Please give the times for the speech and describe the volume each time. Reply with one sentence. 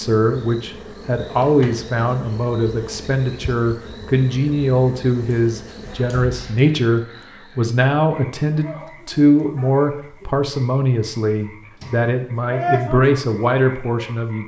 The speech can be heard from 0.0 to 14.4 s, at a steady volume.